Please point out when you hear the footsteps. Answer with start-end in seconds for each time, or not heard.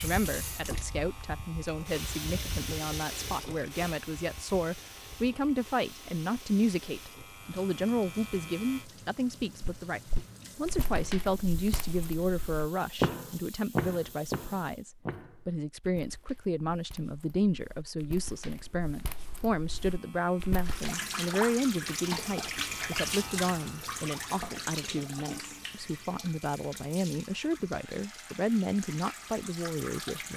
9.6-20.9.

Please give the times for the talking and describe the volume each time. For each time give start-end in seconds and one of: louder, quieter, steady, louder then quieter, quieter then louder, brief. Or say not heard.
0.0-30.3 steady.